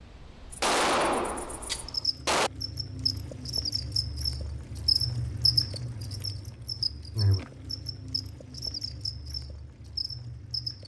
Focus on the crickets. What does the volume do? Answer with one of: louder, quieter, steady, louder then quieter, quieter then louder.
louder then quieter.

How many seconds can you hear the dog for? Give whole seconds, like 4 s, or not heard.
not heard.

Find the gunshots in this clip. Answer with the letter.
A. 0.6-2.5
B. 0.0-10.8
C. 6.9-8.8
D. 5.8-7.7
A.